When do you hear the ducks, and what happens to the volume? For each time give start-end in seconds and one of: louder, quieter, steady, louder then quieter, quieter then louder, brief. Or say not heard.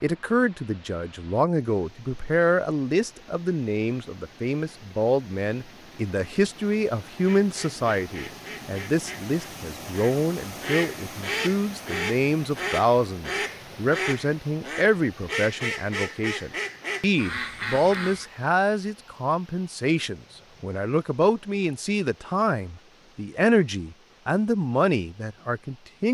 7.2-18.2 louder.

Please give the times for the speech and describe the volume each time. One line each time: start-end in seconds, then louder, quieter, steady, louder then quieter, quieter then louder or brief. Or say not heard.
0.0-26.0 steady.